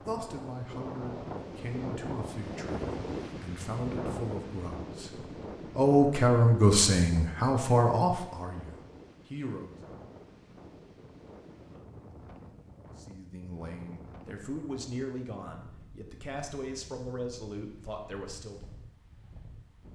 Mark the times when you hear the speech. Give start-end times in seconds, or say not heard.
0.0-9.8, 12.9-18.7.